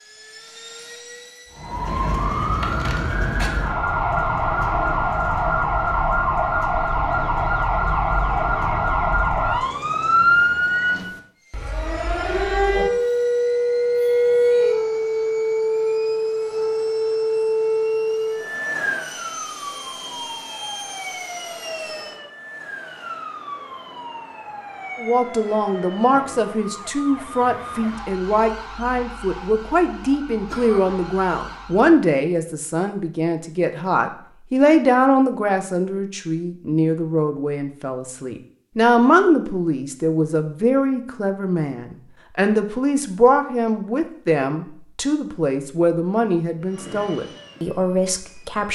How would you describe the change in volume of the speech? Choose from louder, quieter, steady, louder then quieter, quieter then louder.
steady.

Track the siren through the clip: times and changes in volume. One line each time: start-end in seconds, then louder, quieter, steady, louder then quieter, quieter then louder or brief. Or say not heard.
1.5-32.0 quieter.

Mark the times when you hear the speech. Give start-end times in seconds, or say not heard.
24.9-48.6.